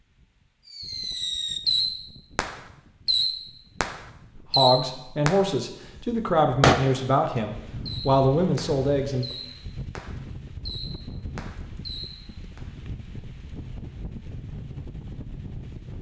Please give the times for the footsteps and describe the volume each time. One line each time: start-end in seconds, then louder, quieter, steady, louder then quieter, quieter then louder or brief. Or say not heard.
not heard.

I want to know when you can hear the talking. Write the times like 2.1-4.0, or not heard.
4.3-9.3.